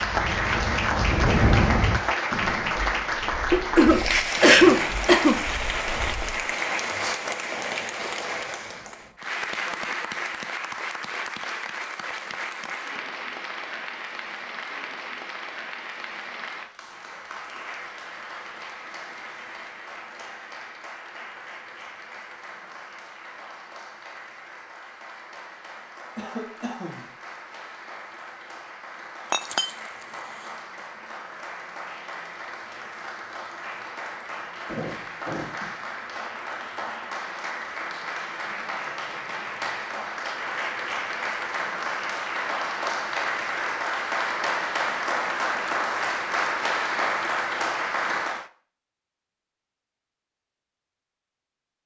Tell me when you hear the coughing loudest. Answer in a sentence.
The volume of the coughing peaks at 5 seconds.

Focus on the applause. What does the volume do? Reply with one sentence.
The loudness of the applause goes down, then up.